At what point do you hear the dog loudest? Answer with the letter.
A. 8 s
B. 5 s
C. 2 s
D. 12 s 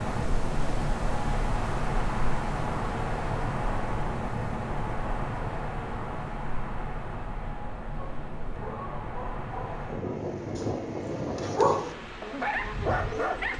D.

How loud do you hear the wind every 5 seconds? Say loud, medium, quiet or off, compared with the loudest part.
loud, medium, loud.